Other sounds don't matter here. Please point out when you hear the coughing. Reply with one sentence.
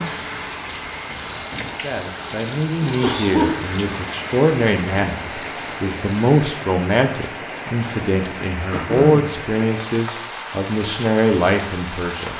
The coughing can be heard from 2.8 to 3.8 s and from 8.7 to 9.4 s.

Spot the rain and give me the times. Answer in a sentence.
You can hear the rain from 0.0 to 12.3 s.